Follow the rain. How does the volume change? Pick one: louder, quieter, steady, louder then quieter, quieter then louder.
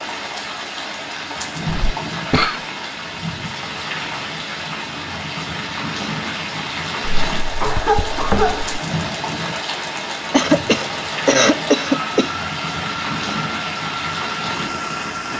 steady.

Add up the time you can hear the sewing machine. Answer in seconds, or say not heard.
8 s.